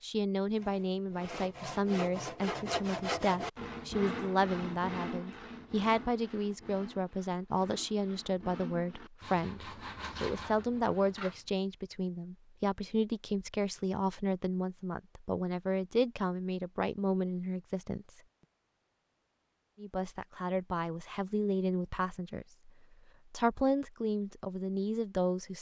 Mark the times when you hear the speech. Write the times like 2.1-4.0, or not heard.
0.0-18.1, 19.8-22.4, 23.3-25.5.